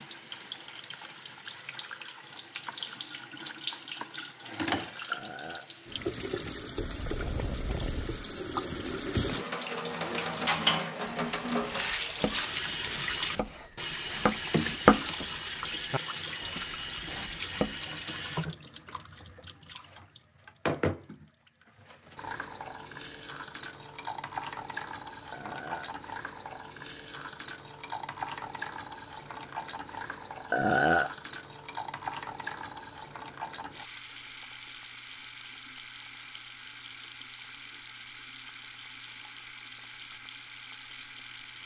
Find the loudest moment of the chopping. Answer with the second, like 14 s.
15 s.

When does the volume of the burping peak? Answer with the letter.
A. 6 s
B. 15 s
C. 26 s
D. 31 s
D.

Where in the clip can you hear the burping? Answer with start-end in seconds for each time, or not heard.
5.1-5.7, 25.3-25.9, 30.5-31.1.